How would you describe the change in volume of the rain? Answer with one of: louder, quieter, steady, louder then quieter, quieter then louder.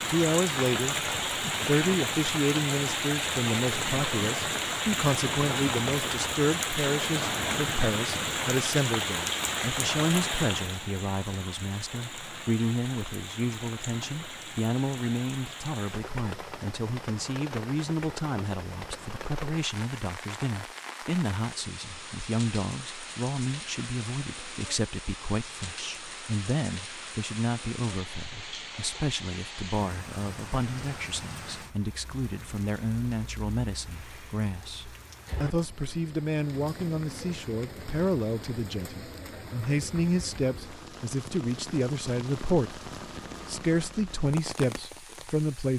quieter.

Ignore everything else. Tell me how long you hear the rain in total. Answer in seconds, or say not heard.
46 s.